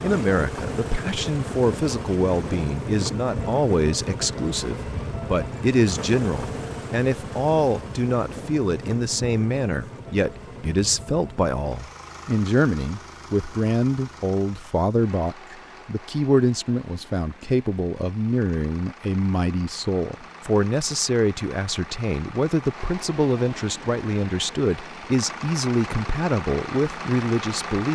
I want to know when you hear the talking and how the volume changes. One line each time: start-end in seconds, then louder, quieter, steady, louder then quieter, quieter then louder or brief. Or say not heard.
0.0-27.8 steady.